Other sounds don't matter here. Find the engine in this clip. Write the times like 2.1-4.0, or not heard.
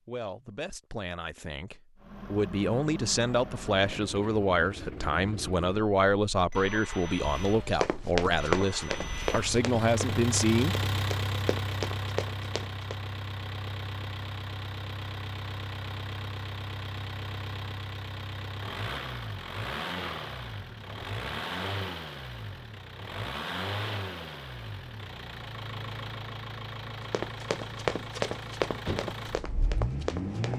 1.9-30.5.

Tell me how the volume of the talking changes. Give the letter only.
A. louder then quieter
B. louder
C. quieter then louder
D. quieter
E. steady
B.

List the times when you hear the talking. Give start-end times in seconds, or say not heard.
0.1-10.8.